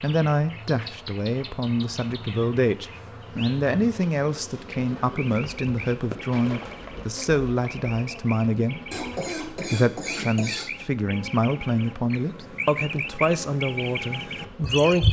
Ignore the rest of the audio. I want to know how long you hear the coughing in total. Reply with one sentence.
You can hear the coughing for 2 seconds altogether.